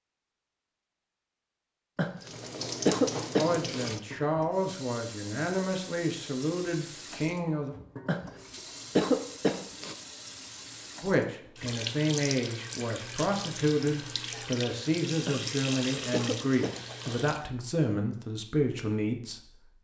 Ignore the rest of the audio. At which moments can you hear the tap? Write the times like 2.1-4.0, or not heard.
2.2-17.4.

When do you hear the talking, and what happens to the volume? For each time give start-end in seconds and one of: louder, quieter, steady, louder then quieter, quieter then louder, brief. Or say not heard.
3.4-7.8 steady
11.0-19.7 steady.